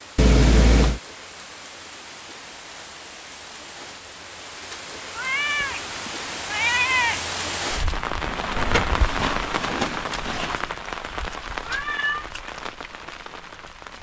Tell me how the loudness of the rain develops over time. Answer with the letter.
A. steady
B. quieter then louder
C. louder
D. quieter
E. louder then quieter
E.